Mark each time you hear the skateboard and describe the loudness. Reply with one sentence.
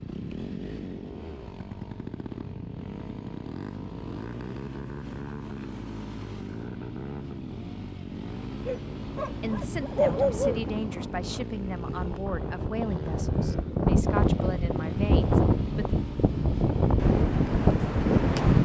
You can't hear the skateboard here.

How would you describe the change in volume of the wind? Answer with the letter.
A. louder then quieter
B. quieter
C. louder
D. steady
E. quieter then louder
C.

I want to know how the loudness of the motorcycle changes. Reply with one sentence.
The volume of the motorcycle stays about the same.